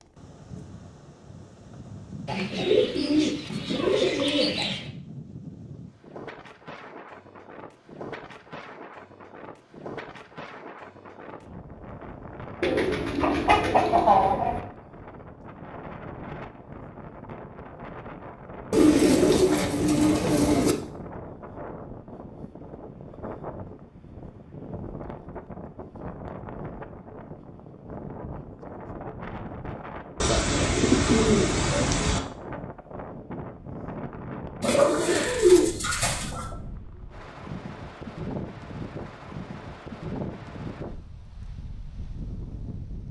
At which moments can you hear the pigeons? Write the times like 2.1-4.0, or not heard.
2.2-4.8, 12.6-14.6, 18.7-20.8, 30.2-32.2, 34.6-36.5.